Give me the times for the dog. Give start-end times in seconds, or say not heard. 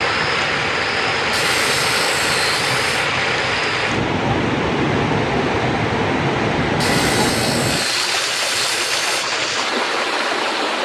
not heard.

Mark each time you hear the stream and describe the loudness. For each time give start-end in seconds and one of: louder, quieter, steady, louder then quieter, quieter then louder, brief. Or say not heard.
0.0-10.7 steady.